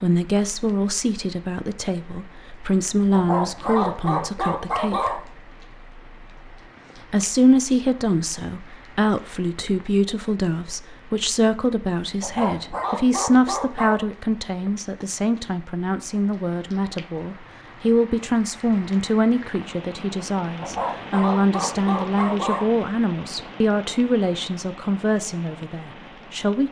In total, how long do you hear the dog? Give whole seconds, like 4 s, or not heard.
6 s.